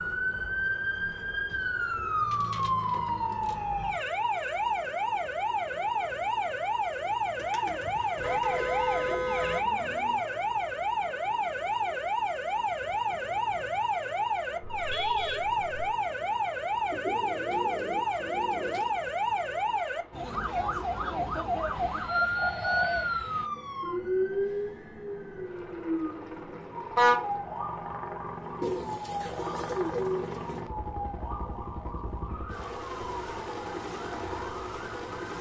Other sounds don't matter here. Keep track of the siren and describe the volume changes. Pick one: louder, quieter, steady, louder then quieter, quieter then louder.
quieter.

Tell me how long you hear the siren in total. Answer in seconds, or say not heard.
35 s.